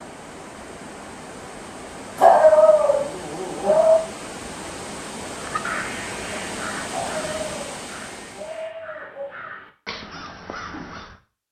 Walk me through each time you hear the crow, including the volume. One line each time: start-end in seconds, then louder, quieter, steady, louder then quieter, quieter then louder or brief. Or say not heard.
5.3-11.2 quieter then louder.